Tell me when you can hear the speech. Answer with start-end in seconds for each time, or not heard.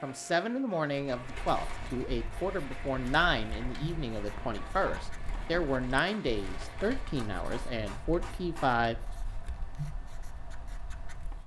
0.0-8.9.